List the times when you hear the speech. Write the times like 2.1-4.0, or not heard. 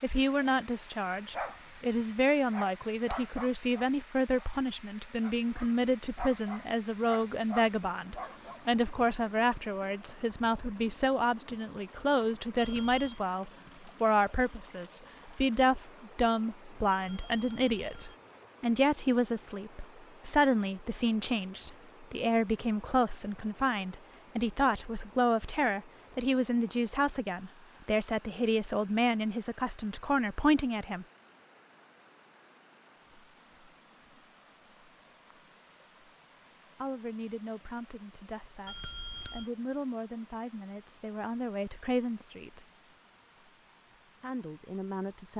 0.0-31.1, 36.8-42.6, 44.2-45.3.